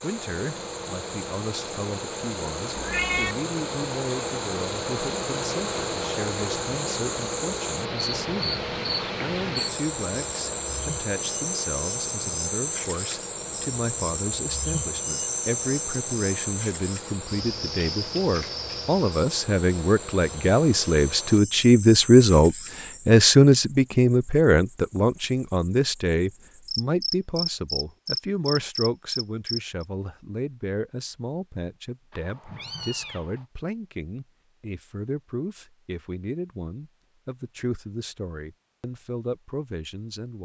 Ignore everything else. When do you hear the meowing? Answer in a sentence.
The meowing can be heard from 2.8 to 3.4 s and from 32.1 to 33.5 s.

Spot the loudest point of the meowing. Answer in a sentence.
The loudest moment of the meowing is at 3 seconds.